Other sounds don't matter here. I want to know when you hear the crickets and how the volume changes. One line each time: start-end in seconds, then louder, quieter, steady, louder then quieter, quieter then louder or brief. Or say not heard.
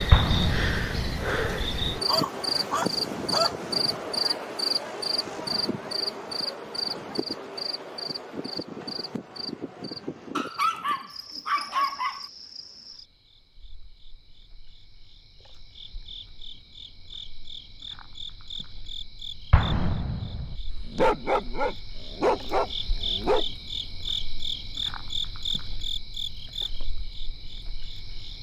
0.0-28.3 quieter then louder.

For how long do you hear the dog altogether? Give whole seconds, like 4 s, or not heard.
6 s.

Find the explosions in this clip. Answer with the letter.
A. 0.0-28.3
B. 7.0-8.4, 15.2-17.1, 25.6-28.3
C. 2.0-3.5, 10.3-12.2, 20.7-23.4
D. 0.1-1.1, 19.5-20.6
D.